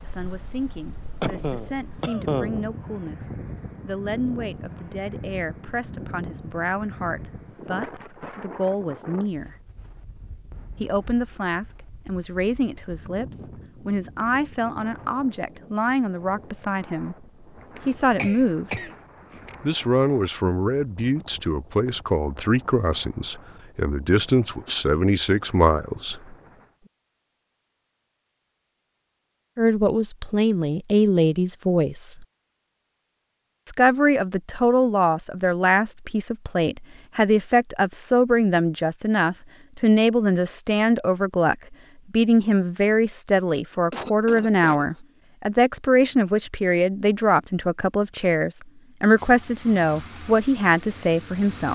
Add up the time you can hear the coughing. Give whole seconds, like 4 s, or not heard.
5 s.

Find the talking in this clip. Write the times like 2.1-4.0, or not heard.
0.0-9.6, 10.8-17.2, 17.9-18.9, 19.6-26.4, 29.6-32.2, 33.6-51.7.